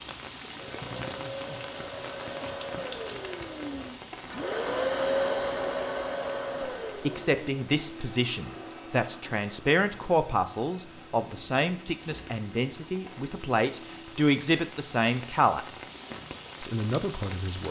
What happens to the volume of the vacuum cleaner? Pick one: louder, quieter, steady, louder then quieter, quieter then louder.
louder then quieter.